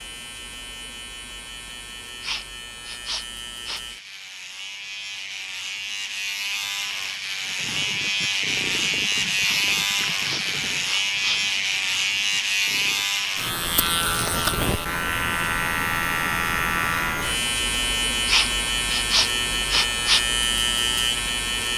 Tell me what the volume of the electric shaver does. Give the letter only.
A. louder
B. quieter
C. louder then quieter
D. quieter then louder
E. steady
A.